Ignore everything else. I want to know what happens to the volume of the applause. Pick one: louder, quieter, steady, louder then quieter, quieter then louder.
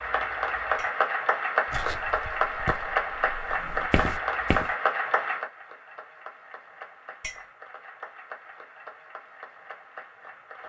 quieter.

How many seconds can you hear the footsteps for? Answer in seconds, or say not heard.
3 s.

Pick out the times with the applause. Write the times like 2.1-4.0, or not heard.
0.0-10.6.